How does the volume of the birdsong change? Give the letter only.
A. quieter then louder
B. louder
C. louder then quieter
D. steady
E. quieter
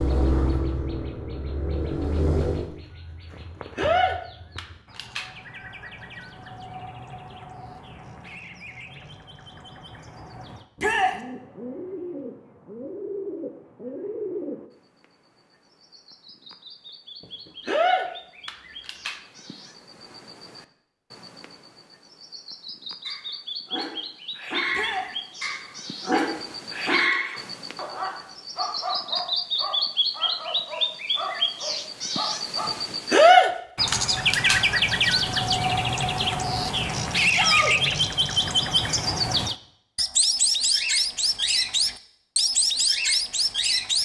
B.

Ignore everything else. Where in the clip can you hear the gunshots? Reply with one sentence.
You can hear the gunshots from 3.8 to 5.3 s, from 17.6 to 19.2 s and from 33.1 to 34.6 s.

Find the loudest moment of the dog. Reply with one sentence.
The volume of the dog peaks at 27 seconds.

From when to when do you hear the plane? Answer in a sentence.
The plane can be heard from 0.0 to 2.7 s.